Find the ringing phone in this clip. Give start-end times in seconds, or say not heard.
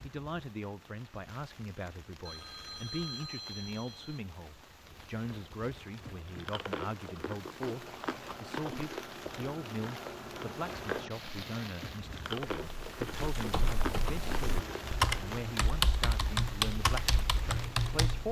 2.2-4.2.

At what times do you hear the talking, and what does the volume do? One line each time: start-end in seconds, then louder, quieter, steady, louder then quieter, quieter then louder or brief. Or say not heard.
0.0-18.2 steady.